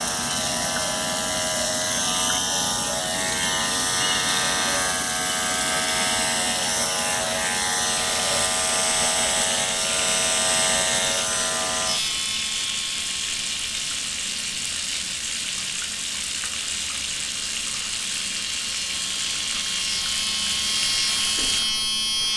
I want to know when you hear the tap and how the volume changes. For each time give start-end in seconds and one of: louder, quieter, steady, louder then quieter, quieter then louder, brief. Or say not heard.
0.0-22.3 steady.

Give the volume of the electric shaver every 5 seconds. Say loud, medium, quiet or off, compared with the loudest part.
loud, loud, loud, medium, loud.